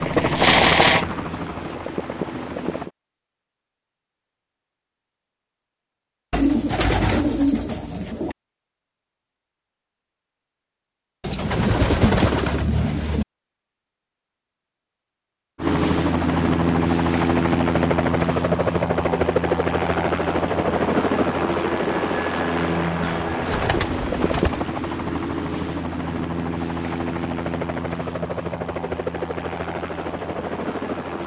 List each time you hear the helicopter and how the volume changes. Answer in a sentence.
You can hear the helicopter briefly from 0.0 to 2.9 s; and from 15.6 to 31.2 s, getting quieter.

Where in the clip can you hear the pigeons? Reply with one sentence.
You can hear the pigeons from 6.3 to 8.3 s, from 11.2 to 13.2 s and from 23.0 to 24.6 s.